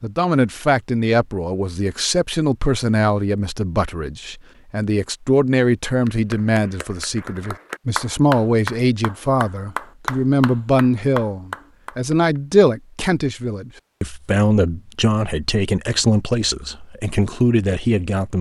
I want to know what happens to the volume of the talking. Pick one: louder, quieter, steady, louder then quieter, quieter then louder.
steady.